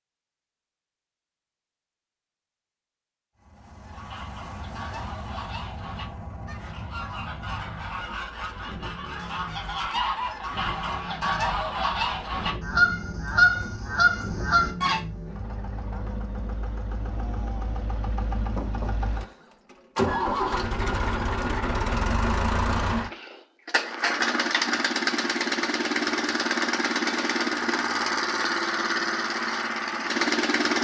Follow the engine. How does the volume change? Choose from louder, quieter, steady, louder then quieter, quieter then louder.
louder.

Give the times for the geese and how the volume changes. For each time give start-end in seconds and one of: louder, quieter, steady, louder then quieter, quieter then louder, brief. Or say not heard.
3.8-15.0 louder.